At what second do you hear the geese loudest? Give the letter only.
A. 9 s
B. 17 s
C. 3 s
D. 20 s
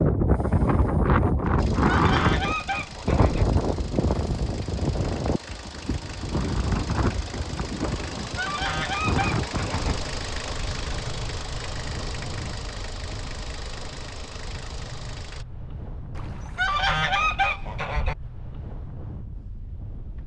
B.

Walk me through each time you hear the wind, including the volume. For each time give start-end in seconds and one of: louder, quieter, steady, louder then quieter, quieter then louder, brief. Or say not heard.
0.0-20.2 quieter.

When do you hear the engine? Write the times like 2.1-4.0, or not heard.
1.6-15.4.